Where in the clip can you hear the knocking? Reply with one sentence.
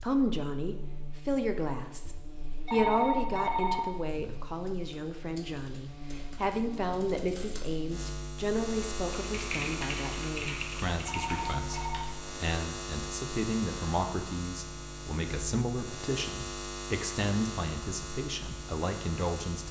The knocking can't be heard in this clip.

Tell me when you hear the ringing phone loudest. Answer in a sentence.
The volume of the ringing phone peaks at 3 seconds.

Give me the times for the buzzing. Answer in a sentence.
You can hear the buzzing from 0.0 to 19.6 s.